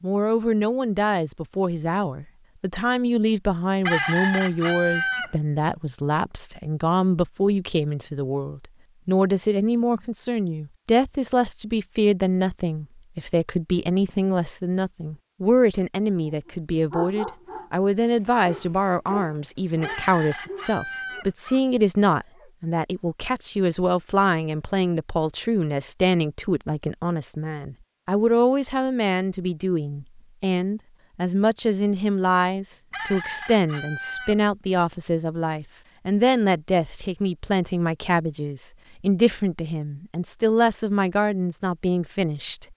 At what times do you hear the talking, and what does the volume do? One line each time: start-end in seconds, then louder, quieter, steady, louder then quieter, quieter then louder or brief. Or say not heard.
0.0-42.6 steady.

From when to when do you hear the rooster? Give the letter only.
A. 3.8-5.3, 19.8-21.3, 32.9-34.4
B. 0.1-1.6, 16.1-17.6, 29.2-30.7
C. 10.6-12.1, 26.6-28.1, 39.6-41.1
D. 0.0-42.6
A.